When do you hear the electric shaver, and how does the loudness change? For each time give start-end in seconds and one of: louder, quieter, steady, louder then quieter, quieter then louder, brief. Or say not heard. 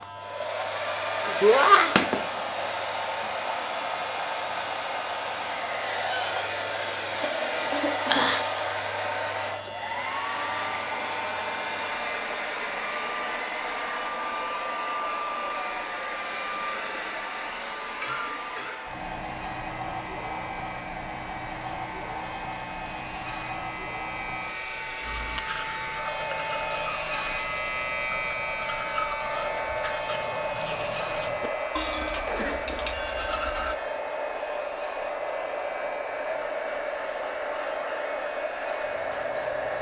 0.0-39.7 louder then quieter.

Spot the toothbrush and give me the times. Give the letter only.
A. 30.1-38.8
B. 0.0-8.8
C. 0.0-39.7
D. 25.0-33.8
D.